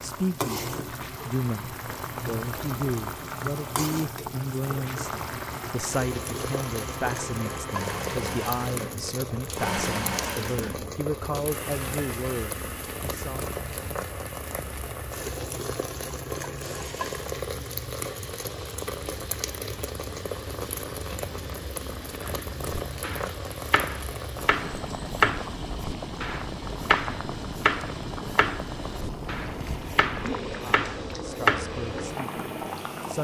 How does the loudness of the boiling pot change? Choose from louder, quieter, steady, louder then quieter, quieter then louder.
steady.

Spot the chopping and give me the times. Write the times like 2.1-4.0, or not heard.
22.2-31.8.